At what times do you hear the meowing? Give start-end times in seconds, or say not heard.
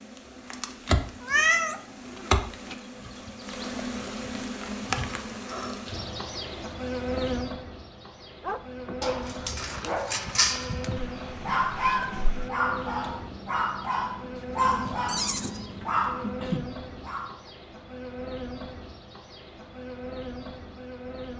1.2-2.2, 10.9-12.5, 14.7-15.7.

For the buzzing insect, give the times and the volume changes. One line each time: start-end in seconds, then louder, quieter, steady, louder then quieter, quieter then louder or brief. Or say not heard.
0.0-21.3 quieter.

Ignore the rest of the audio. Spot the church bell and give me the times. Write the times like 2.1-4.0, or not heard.
not heard.